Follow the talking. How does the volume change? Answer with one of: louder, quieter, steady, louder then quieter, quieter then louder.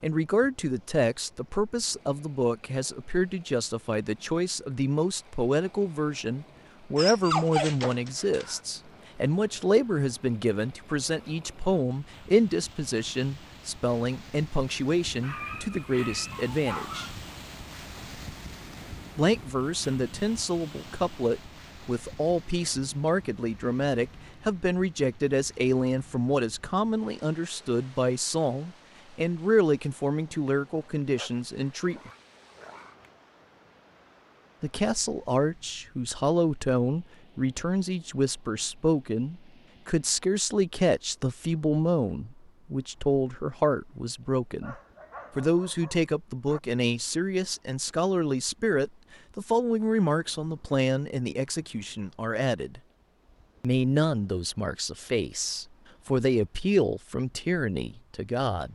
steady.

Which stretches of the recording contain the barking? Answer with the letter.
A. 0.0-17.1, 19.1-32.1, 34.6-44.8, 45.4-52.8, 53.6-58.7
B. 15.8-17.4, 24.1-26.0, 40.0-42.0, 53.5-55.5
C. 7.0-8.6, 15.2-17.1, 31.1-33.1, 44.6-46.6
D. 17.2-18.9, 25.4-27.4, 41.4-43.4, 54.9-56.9
C.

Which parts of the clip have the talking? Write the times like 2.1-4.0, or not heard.
0.0-17.1, 19.1-32.1, 34.6-44.8, 45.4-52.8, 53.6-58.7.